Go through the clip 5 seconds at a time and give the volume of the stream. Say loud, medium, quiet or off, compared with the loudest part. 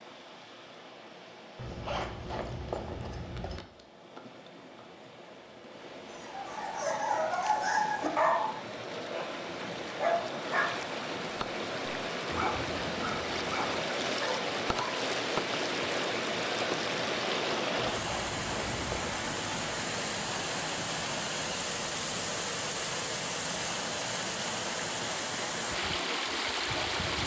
quiet, medium, loud, loud, loud, loud.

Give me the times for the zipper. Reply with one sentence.
The zipper can be heard from 1.6 to 3.6 s and from 17.8 to 19.2 s.